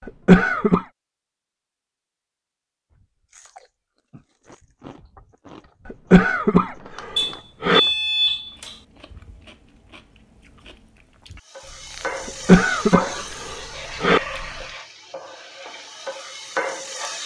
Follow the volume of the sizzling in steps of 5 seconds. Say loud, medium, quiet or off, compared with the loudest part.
off, off, loud, loud.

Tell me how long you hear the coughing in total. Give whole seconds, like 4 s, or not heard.
5 s.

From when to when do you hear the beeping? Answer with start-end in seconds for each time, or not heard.
7.2-8.8.